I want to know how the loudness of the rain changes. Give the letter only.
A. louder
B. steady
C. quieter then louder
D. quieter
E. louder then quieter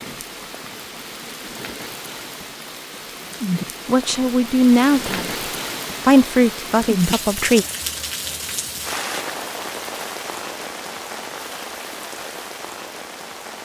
E.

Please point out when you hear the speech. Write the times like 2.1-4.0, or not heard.
3.9-7.7.